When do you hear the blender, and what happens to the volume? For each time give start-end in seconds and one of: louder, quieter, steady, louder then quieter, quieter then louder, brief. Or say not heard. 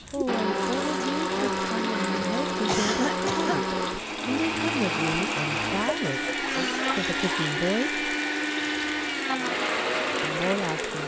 0.0-11.0 steady.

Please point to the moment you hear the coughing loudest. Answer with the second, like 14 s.
3 s.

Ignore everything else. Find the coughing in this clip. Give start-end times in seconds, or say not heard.
2.6-3.6, 6.4-7.5.